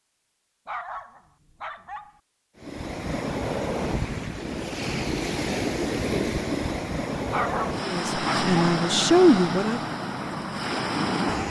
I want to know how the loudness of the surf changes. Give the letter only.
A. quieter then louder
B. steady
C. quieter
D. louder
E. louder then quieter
B.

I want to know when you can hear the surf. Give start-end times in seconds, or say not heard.
2.5-11.4.